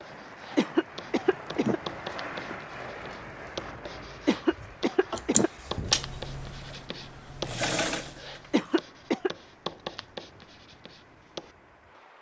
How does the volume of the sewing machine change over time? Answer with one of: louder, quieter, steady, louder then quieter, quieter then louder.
quieter then louder.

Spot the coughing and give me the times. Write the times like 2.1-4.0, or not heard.
0.6-1.8, 4.2-5.5, 8.5-9.3.